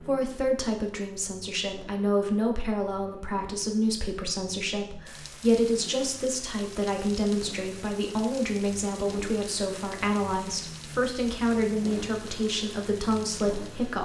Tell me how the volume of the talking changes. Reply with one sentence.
The volume of the talking stays about the same.